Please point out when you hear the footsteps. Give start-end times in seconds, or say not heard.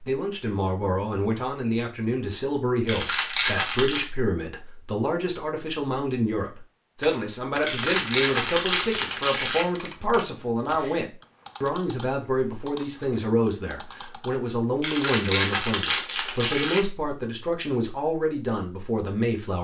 not heard.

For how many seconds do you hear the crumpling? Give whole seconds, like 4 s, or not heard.
5 s.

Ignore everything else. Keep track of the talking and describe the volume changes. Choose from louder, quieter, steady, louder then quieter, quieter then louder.
steady.